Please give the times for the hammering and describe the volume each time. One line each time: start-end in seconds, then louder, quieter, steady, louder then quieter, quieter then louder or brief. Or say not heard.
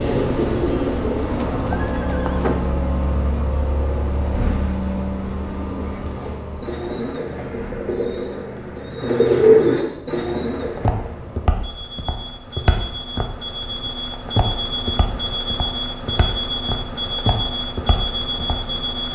not heard.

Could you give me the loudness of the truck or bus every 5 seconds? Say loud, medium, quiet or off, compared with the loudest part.
loud, medium, medium, loud.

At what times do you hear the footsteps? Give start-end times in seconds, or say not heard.
10.8-18.6.